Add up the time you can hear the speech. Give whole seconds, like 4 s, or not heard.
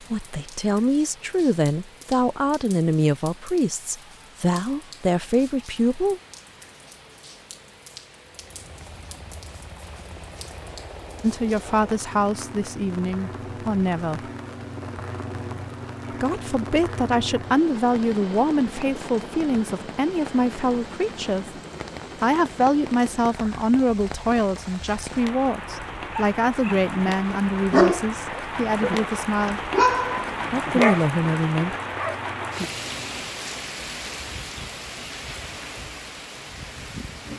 23 s.